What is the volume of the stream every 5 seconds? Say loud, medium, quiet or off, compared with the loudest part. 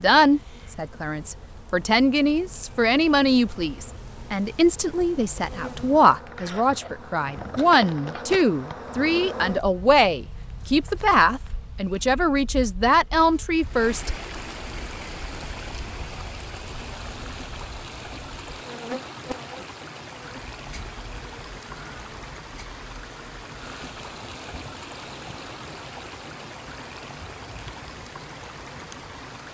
off, off, loud, loud, loud, loud.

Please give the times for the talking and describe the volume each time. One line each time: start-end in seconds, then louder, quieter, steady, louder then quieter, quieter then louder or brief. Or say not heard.
0.0-14.1 steady.